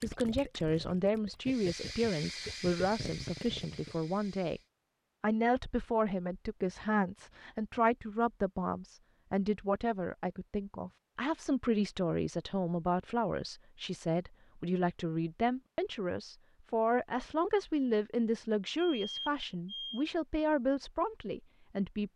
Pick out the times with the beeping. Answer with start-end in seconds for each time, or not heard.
18.8-20.1.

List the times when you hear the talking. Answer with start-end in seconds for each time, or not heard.
0.0-4.6, 5.2-22.1.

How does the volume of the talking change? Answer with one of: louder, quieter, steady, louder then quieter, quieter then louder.
steady.